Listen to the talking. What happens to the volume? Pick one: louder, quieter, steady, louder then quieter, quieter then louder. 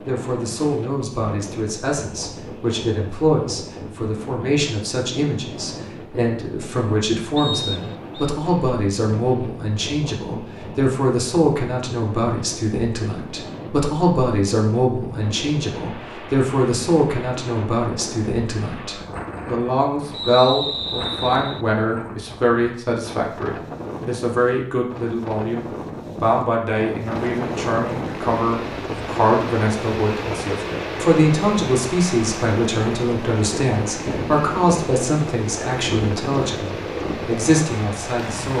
steady.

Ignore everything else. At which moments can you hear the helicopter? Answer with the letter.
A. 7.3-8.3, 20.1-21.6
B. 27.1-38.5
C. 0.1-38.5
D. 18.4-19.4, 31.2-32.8
B.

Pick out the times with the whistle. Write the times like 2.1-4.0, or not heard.
7.3-8.3, 20.1-21.6.